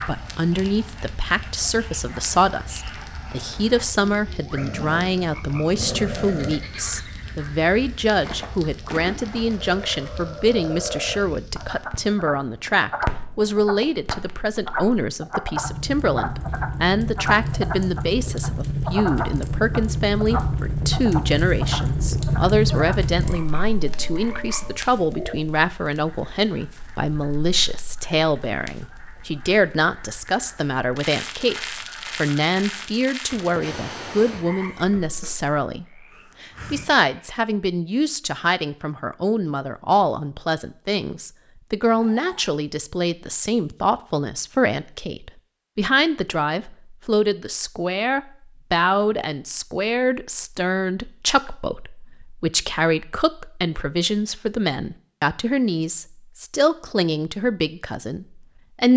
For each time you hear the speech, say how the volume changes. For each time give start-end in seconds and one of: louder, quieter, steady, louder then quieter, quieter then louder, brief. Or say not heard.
0.1-58.9 steady.